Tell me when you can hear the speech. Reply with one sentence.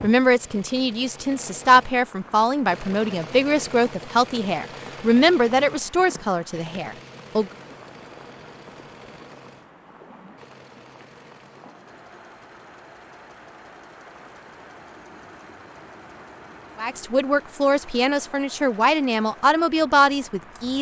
The speech can be heard from 0.0 to 7.5 s and from 16.8 to 20.7 s.